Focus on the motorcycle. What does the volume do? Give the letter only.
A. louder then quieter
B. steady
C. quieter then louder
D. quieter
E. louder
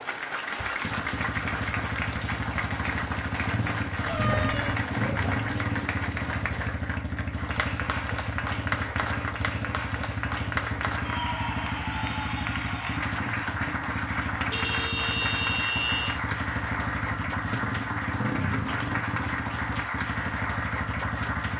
B.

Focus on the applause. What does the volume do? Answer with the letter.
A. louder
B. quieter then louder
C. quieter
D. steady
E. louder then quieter
D.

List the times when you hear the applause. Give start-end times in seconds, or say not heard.
0.0-21.5.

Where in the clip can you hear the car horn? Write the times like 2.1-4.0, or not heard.
4.0-4.8, 14.5-16.2.